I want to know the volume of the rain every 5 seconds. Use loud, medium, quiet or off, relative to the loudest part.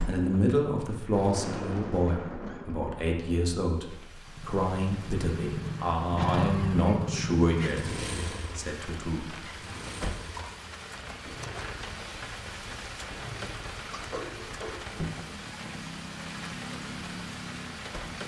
loud, medium, loud, loud.